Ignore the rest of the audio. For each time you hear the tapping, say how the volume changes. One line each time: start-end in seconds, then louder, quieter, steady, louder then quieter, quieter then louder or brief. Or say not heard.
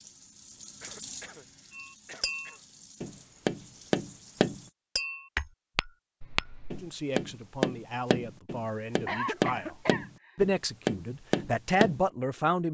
1.7-12.1 steady.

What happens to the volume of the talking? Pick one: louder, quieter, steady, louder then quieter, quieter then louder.
louder.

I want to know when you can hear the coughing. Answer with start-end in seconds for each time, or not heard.
0.8-1.4, 2.0-2.6, 6.2-6.9, 9.1-10.3.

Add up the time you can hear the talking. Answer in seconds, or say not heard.
6 s.